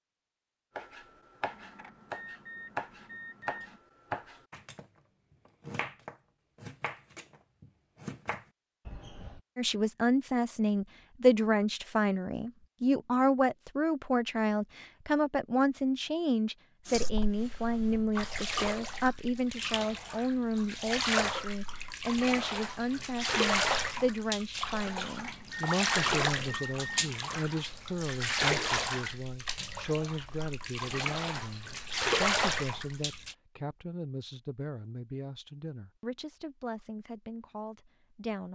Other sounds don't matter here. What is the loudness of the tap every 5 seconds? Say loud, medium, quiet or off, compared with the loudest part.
off, off, off, medium, loud, loud, loud, off.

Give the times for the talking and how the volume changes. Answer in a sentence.
The talking can be heard from 9.6 to 38.5 s, getting quieter.